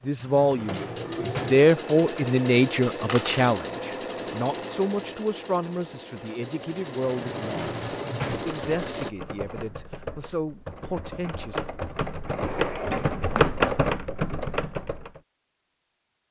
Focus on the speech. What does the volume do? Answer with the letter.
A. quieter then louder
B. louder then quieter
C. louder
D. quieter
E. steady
D.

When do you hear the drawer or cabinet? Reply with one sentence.
The drawer or cabinet can be heard from 0.1 to 1.6 s, from 7.2 to 8.6 s and from 12.2 to 13.5 s.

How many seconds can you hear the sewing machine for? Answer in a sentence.
You can hear the sewing machine for 9 seconds altogether.